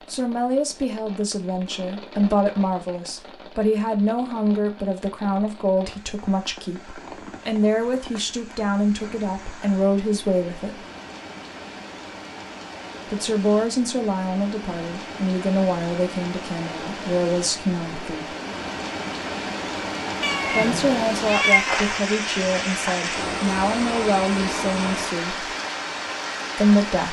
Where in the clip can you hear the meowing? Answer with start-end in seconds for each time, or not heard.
20.2-21.8.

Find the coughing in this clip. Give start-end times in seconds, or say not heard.
not heard.